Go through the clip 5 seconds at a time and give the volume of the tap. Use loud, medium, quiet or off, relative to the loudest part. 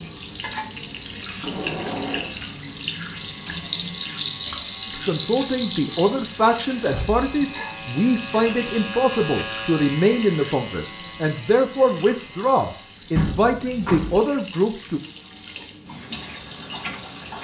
loud, loud, medium, medium.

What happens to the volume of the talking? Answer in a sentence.
The loudness of the talking stays about the same.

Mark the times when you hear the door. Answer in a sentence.
You can hear the door from 1.4 to 2.4 s, from 6.8 to 7.2 s and from 13.2 to 14.2 s.